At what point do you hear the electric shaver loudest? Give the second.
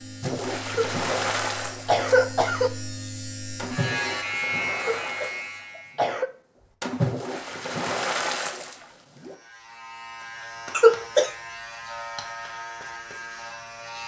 4 s.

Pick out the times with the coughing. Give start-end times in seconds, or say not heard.
0.7-2.7, 5.0-6.3, 10.8-11.3.